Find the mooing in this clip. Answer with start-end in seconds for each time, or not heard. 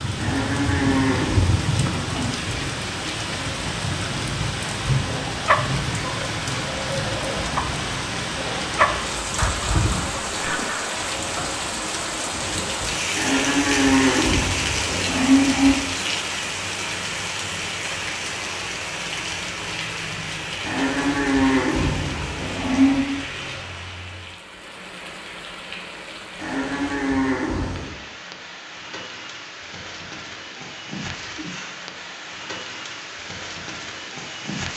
0.1-2.3, 13.2-15.8, 20.6-23.1, 26.4-27.9.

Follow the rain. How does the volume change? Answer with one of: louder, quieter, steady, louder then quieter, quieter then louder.
quieter.